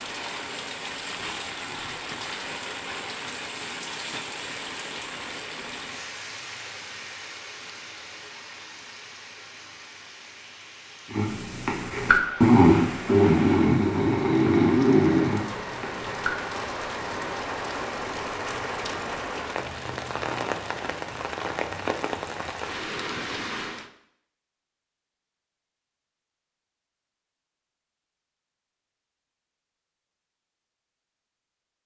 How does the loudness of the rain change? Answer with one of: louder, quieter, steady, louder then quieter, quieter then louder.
quieter then louder.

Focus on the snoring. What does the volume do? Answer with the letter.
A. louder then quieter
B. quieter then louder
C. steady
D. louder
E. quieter
A.